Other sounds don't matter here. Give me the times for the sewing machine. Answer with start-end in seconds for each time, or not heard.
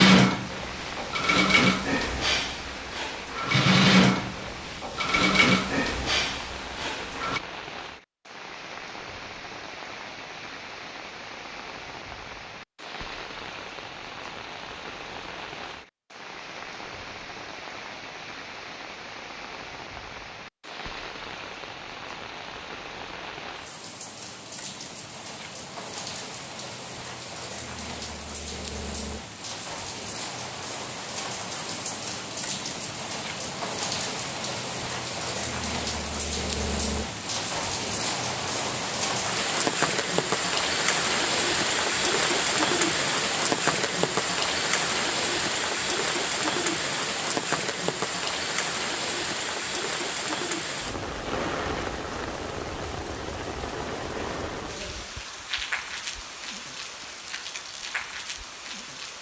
0.0-7.4.